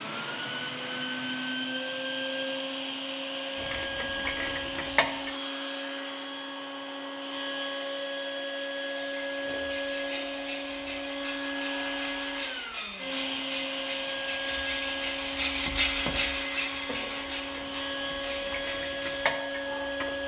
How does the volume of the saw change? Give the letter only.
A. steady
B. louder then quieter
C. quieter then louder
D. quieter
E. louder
B.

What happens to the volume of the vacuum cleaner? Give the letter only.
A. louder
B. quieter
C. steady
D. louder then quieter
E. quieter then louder
C.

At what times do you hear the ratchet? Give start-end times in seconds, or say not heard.
3.5-5.3, 16.6-20.2.